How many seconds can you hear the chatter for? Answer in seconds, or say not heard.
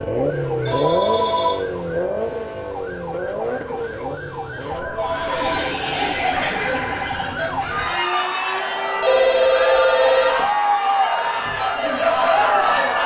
8 s.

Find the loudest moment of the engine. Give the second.
1 s.